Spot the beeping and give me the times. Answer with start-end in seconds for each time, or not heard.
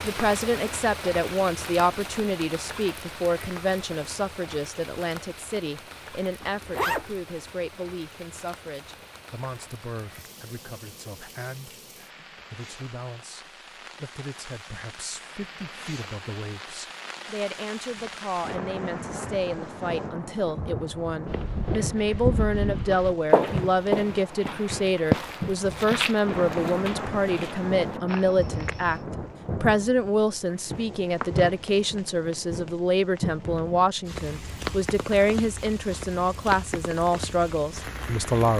not heard.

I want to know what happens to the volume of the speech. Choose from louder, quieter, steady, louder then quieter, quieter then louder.
quieter then louder.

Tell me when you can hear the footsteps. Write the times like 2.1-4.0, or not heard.
21.2-29.0.